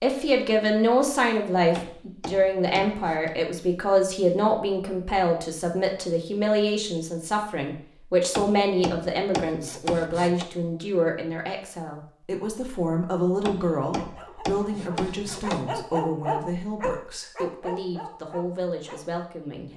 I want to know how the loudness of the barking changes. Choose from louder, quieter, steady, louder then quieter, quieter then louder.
louder then quieter.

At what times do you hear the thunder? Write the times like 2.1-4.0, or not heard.
not heard.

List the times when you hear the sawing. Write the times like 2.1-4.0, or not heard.
1.8-3.4, 8.3-10.4, 13.4-15.7.